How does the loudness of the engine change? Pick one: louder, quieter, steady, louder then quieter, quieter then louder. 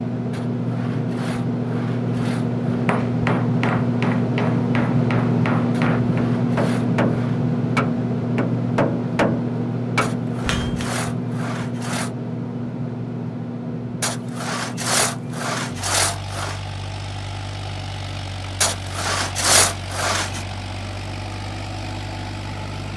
quieter.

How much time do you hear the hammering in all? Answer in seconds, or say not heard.
8 s.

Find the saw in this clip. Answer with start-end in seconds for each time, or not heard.
0.3-2.9, 5.7-7.4, 10.0-12.1, 14.0-16.6, 18.6-20.4.